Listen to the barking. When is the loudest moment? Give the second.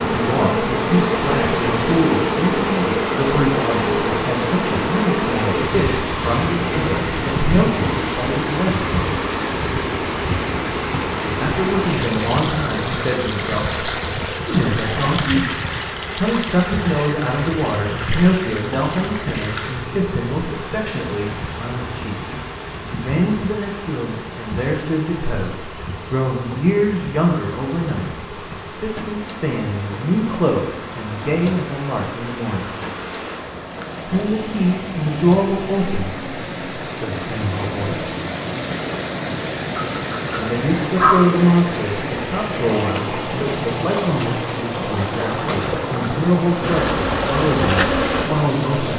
41 s.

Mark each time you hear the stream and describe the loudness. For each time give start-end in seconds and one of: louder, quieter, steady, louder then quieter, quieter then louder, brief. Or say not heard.
0.0-48.9 quieter then louder.